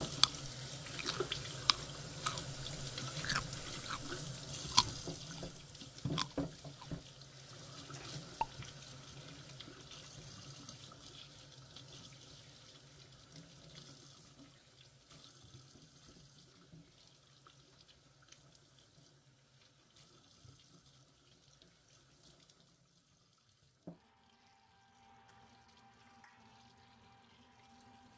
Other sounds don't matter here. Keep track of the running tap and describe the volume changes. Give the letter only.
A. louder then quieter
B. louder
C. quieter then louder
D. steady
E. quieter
E.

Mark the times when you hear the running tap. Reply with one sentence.
The running tap can be heard from 0.0 to 28.1 s.